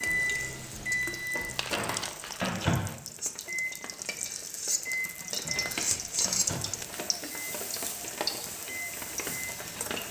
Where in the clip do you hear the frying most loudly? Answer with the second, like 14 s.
6 s.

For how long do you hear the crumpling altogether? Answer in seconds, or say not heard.
3 s.